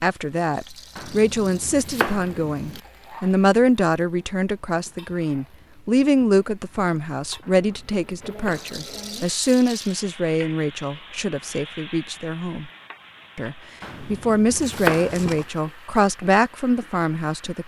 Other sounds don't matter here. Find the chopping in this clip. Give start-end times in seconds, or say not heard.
0.9-2.8, 7.4-9.3, 13.8-15.3.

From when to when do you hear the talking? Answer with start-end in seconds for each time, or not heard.
0.0-12.7, 13.3-17.6.